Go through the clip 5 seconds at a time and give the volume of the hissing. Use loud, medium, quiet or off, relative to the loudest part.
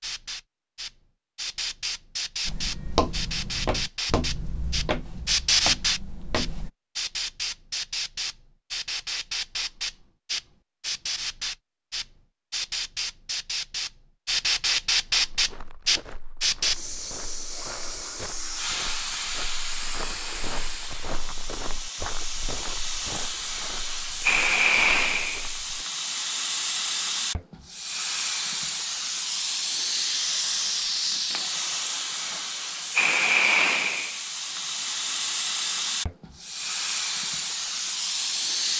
medium, loud, loud, loud, loud, loud, loud, loud.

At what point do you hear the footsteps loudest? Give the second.
3 s.